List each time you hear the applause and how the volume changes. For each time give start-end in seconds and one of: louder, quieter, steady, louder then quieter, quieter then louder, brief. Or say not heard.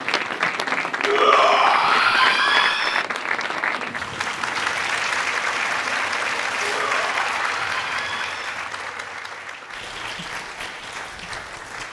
0.0-11.8 quieter.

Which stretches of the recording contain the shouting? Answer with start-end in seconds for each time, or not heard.
1.1-3.0, 6.6-8.6.